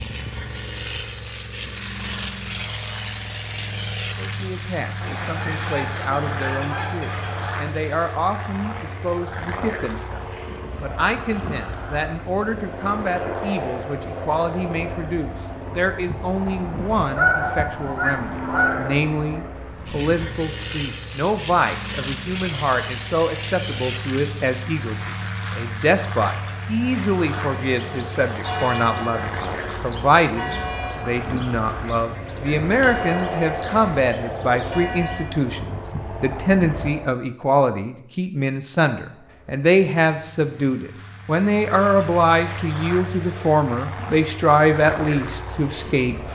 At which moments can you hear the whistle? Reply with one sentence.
The whistle can't be heard in this clip.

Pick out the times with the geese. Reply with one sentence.
The geese can be heard from 5.0 to 7.7 s, from 17.1 to 18.9 s and from 31.6 to 34.1 s.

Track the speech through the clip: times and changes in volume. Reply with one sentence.
You can hear the speech from 4.2 to 46.3 s, getting louder.